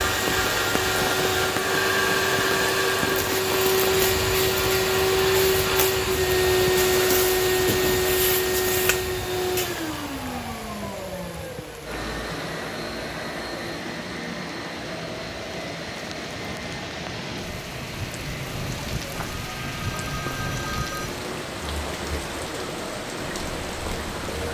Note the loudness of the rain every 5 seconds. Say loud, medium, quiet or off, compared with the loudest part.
loud, loud, medium, loud, loud.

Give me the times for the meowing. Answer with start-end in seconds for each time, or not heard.
not heard.